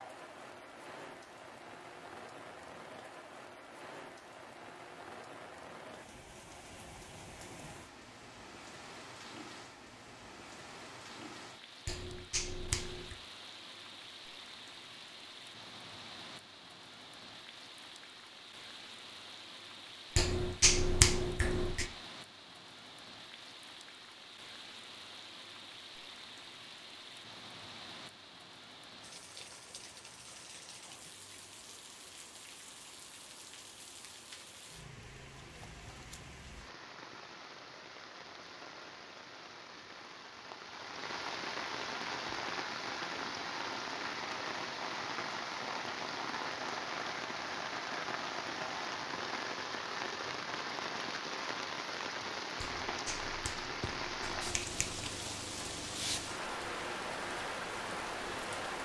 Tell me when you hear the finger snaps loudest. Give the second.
21 s.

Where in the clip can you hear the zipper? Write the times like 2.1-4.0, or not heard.
not heard.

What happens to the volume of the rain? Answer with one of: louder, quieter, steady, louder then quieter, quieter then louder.
louder.